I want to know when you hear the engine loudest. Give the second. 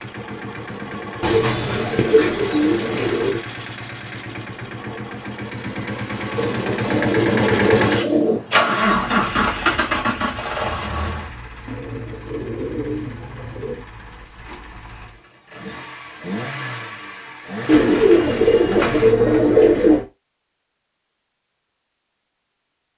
9 s.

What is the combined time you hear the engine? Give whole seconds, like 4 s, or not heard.
19 s.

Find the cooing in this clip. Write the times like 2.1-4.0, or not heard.
1.2-3.4, 6.3-8.4, 11.7-13.8, 17.6-20.1.